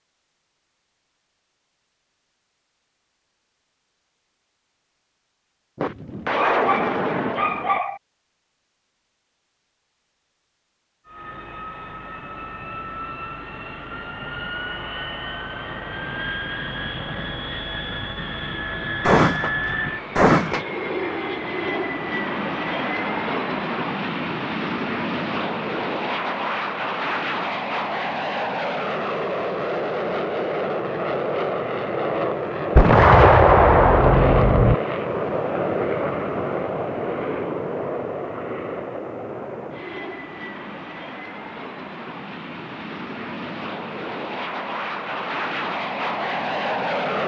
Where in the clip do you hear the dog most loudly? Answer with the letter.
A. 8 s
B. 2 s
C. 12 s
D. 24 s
A.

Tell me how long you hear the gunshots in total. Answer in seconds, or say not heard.
6 s.